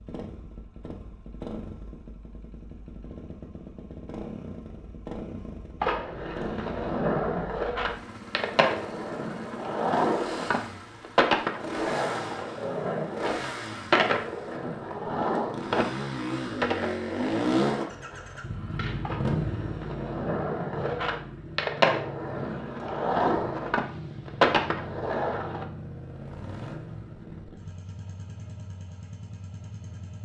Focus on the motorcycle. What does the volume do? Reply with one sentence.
The volume of the motorcycle goes up, then down.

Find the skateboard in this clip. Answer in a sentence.
You can hear the skateboard from 5.8 to 25.6 s.